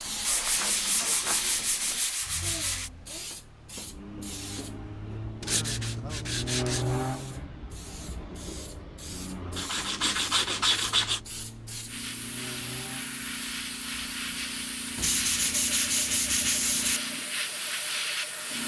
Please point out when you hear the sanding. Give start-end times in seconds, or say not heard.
0.2-2.9, 5.4-6.9, 9.6-11.2, 14.9-17.0.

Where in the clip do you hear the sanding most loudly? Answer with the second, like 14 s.
11 s.